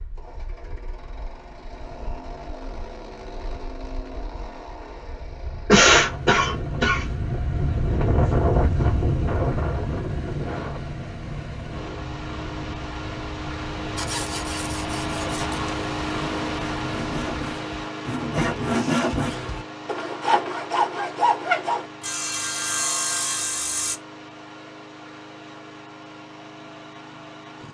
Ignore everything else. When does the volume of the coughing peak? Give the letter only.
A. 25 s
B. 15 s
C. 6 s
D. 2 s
C.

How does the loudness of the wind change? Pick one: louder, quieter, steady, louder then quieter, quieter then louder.
louder then quieter.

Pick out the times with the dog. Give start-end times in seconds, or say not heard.
not heard.